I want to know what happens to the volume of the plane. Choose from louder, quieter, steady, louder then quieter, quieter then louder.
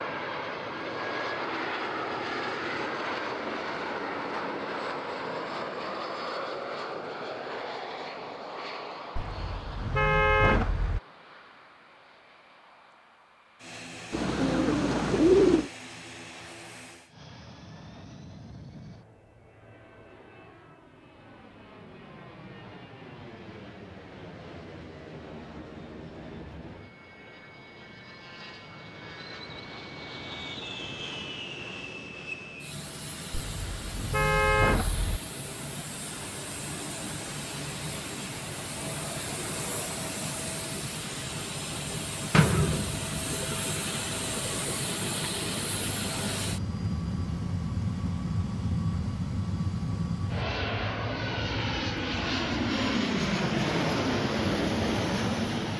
quieter then louder.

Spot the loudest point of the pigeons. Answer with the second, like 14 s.
15 s.